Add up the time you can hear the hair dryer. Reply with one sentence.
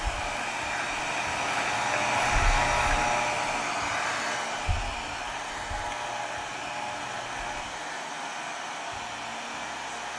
The hair dryer can be heard for 10 seconds in total.